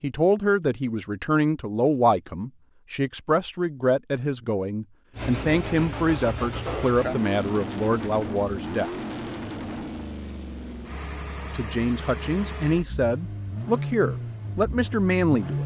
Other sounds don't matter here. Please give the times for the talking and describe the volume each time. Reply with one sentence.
You can hear the talking from 0.0 to 8.9 s, at a steady volume; and from 11.4 to 15.6 s, at a steady volume.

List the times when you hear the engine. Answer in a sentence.
The engine can be heard from 5.2 to 15.6 s.